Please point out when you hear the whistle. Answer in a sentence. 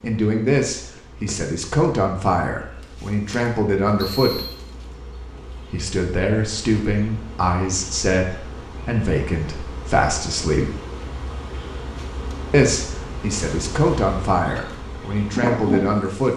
You can hear the whistle from 4.0 to 4.6 s.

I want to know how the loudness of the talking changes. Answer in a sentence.
The volume of the talking stays about the same.